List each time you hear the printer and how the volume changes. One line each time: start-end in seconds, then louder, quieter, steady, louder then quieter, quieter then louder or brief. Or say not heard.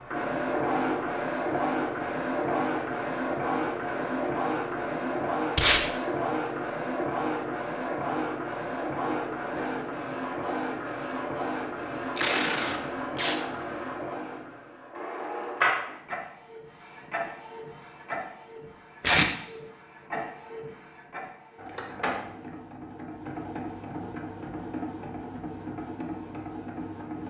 0.0-27.2 quieter.